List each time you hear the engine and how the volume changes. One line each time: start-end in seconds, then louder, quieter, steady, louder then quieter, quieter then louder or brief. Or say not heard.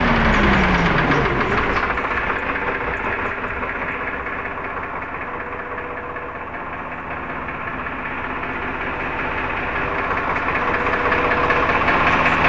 0.0-12.4 quieter then louder.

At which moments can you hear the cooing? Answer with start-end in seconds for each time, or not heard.
0.3-1.9.